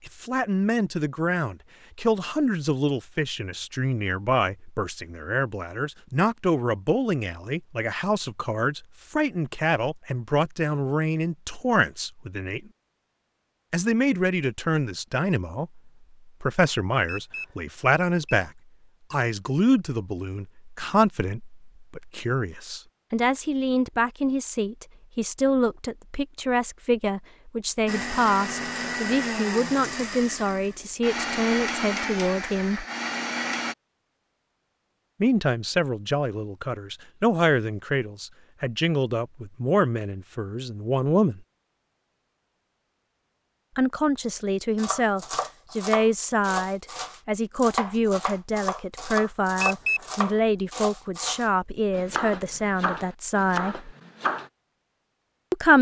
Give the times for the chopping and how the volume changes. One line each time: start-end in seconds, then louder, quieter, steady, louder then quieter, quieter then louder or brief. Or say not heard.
44.8-54.5 steady.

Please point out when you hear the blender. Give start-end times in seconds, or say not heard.
27.9-33.8.